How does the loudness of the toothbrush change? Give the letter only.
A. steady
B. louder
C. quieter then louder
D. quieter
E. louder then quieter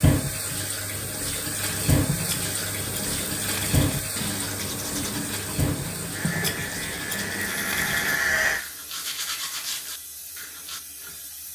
A.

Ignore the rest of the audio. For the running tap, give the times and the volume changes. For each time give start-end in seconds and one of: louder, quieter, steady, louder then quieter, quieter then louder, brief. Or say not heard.
0.0-11.5 quieter.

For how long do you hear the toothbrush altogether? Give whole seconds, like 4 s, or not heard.
9 s.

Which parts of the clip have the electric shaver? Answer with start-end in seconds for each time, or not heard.
6.1-8.6.